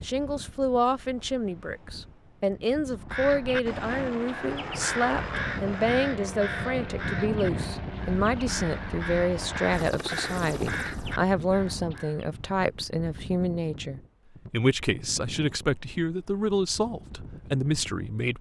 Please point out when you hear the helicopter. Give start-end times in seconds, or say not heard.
3.6-11.2.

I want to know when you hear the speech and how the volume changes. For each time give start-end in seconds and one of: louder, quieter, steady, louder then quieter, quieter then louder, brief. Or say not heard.
0.0-18.3 steady.